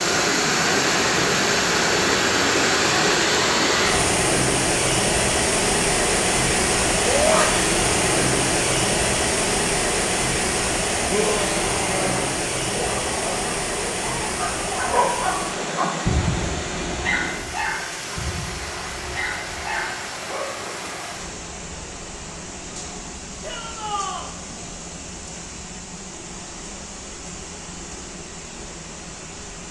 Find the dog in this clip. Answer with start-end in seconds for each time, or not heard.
12.7-20.8.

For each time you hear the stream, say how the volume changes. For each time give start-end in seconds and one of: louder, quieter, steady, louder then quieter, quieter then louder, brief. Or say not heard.
0.0-29.6 quieter.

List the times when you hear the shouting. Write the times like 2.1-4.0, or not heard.
7.0-7.5, 11.1-12.3, 23.4-24.3.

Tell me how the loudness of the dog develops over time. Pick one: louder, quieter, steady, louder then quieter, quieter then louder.
louder then quieter.